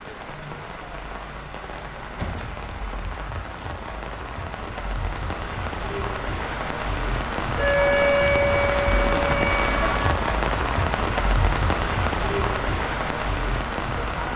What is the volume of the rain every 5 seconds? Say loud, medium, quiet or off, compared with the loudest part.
medium, loud, loud.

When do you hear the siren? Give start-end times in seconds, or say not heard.
7.5-10.2.